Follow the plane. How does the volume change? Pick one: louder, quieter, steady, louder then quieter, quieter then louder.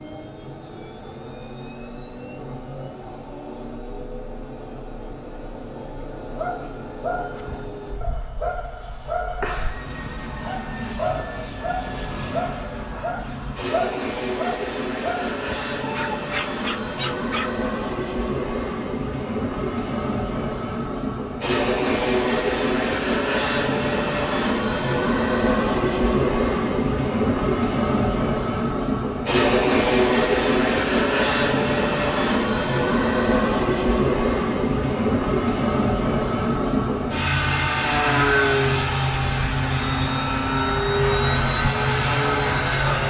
louder.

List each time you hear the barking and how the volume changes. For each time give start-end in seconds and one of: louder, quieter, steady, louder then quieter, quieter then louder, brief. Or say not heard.
6.2-17.6 steady.